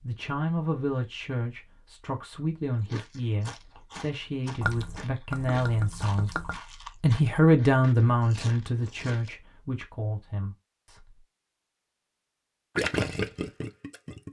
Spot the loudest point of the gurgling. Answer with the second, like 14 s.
13 s.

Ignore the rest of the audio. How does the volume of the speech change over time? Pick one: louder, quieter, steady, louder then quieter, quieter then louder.
louder then quieter.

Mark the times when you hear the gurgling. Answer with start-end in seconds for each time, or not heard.
4.6-6.6, 12.8-14.2.